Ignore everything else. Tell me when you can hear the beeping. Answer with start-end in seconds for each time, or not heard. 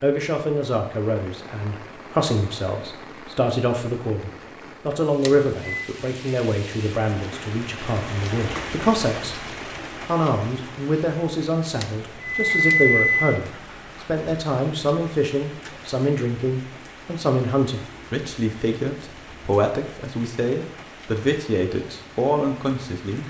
5.2-5.8, 11.8-13.3.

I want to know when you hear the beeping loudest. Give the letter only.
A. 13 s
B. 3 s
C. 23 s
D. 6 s
A.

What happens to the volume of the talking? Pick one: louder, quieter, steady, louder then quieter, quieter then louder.
steady.